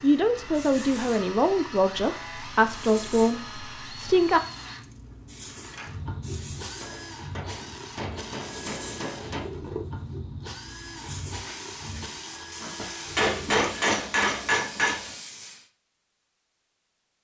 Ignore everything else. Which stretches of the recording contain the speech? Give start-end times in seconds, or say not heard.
0.0-4.4.